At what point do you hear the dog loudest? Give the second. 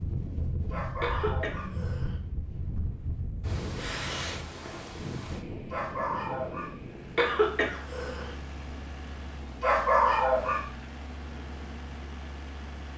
10 s.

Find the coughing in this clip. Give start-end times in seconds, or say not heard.
1.0-2.1, 7.2-8.3.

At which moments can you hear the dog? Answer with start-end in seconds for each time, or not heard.
0.7-1.8, 5.7-6.8, 9.6-10.7.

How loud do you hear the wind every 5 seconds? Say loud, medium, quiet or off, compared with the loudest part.
loud, medium, quiet.